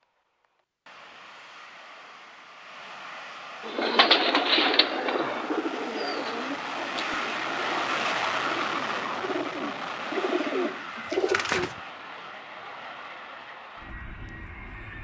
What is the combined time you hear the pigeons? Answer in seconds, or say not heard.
8 s.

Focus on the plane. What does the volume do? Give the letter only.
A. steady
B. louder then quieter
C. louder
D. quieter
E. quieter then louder
B.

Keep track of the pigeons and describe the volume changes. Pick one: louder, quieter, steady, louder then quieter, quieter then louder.
quieter then louder.